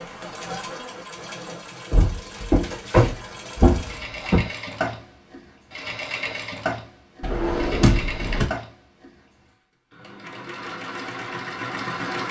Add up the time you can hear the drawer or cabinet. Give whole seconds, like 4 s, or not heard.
4 s.